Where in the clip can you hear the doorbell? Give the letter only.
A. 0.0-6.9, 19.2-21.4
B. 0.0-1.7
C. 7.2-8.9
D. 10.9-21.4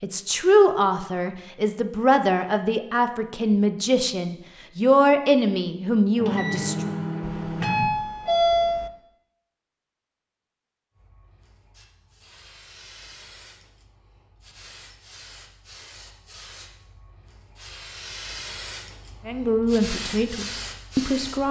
C.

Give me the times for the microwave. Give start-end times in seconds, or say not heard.
6.2-7.8.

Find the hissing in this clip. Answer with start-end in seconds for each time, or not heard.
10.9-21.4.